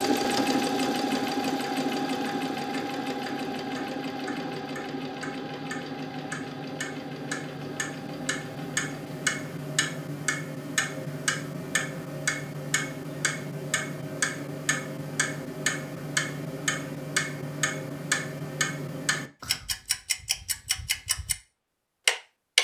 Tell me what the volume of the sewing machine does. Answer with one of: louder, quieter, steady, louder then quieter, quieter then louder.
quieter.